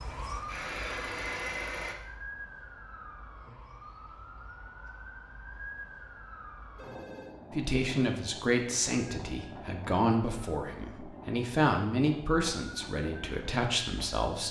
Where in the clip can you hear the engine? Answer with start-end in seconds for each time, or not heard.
0.2-1.9.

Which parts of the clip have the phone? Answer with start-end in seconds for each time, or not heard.
6.8-7.3.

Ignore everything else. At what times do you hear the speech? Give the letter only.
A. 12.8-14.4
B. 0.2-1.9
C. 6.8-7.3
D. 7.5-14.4
D.